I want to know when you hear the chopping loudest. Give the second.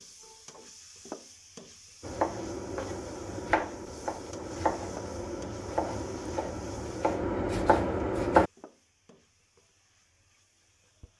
8 s.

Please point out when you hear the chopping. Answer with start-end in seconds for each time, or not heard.
2.0-8.5.